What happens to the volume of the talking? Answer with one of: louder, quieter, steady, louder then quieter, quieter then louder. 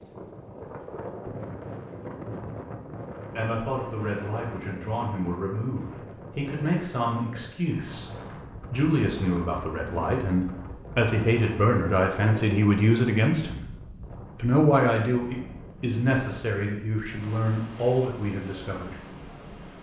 louder then quieter.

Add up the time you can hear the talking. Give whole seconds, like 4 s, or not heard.
15 s.